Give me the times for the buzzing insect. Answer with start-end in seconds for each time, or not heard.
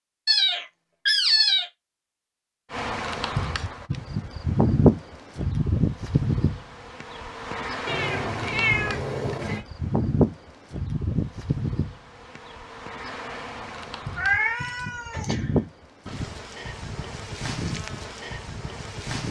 2.7-19.2.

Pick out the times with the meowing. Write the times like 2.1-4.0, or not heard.
0.2-1.6, 7.8-9.6, 14.2-15.4.